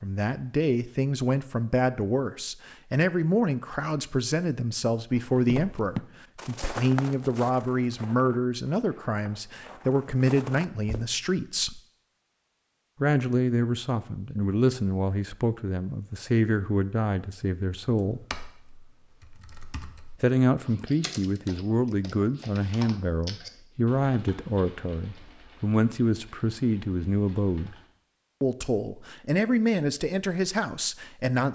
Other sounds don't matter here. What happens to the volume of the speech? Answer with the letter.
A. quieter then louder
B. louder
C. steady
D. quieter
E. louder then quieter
C.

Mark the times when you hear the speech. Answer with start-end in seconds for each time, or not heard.
0.0-11.8, 13.0-18.2, 20.2-27.8, 28.4-31.5.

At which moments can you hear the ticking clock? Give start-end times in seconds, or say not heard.
not heard.